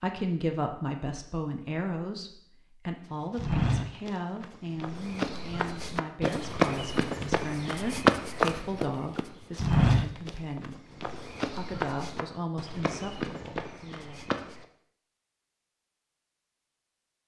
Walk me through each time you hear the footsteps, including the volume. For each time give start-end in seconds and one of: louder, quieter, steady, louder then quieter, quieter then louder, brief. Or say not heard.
3.4-14.7 louder then quieter.